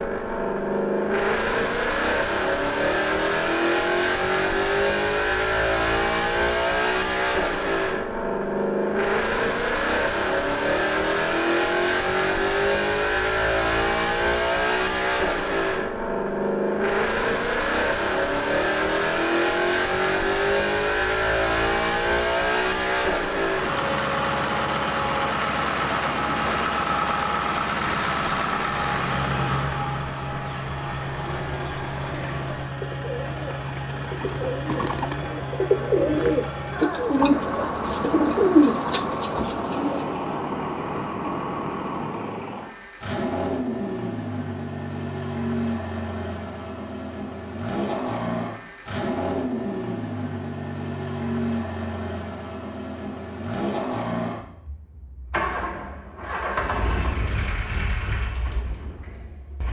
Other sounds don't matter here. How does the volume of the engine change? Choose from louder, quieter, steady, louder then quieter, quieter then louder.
quieter.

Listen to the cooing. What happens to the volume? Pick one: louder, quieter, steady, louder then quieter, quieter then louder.
louder.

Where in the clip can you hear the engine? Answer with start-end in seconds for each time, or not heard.
0.0-59.6.